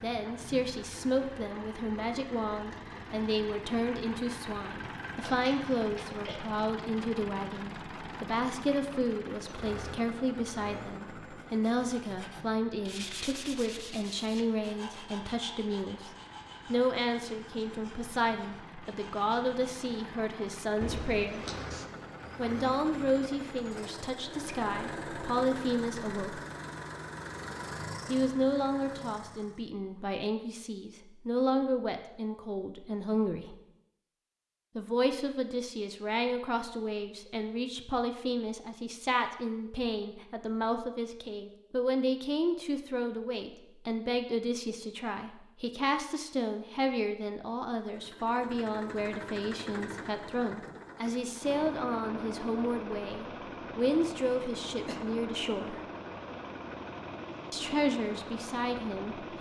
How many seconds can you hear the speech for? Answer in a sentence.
The speech can be heard for 54 seconds in total.